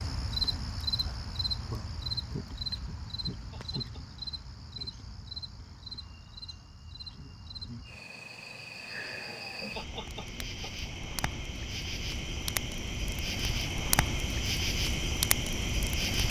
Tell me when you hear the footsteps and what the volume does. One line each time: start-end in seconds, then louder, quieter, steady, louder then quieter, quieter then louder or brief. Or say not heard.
not heard.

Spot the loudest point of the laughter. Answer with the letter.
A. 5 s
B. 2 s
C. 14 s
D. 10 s
D.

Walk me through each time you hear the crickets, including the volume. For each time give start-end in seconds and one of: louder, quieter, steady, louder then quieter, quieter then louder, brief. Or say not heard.
0.0-16.2 quieter then louder.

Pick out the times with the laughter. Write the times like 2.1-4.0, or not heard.
3.5-4.0, 9.8-10.9.